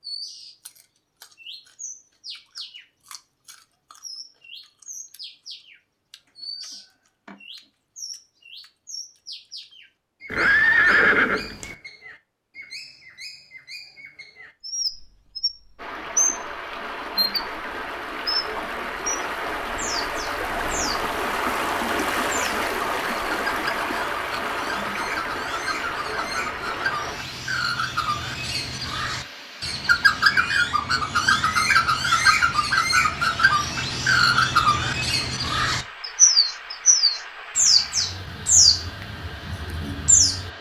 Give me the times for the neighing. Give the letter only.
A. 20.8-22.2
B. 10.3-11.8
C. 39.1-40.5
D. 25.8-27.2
B.